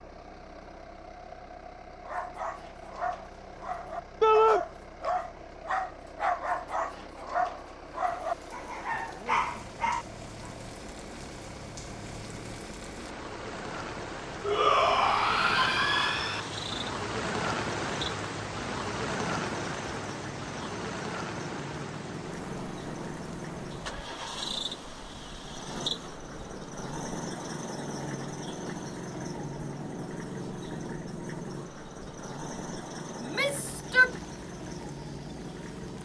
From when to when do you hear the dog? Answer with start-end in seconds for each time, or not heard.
2.0-10.6.